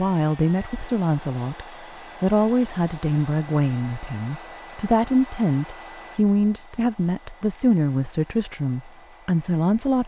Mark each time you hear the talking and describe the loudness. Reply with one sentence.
You can hear the talking from 0.0 to 10.0 s, at a steady volume.